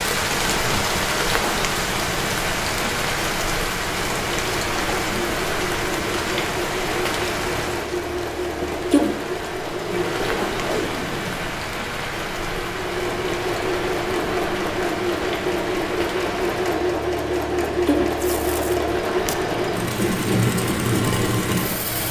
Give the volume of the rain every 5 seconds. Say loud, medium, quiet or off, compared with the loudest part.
loud, loud, medium, medium, medium.